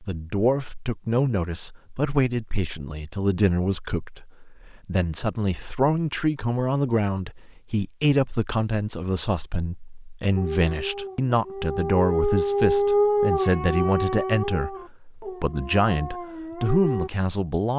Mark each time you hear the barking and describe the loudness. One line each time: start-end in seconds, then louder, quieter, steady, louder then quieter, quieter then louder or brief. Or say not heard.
10.3-17.1 louder then quieter.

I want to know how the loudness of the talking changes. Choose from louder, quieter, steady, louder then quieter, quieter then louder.
steady.